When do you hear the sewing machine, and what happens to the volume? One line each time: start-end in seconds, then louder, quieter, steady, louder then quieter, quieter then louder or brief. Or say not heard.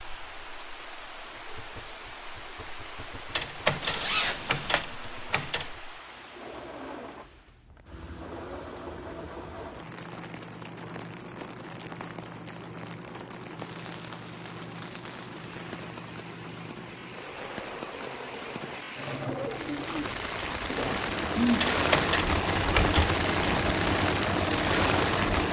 0.2-25.4 louder.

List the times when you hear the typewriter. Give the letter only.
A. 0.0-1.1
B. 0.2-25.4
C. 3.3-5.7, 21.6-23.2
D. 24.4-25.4
C.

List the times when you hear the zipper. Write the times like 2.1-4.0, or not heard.
3.8-4.8.